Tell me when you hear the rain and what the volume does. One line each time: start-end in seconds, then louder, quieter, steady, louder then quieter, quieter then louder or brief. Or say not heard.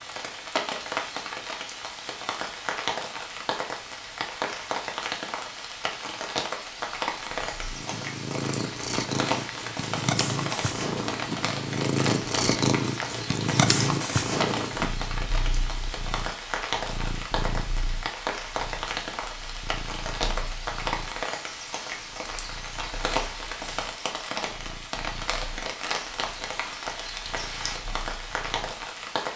0.0-29.3 steady.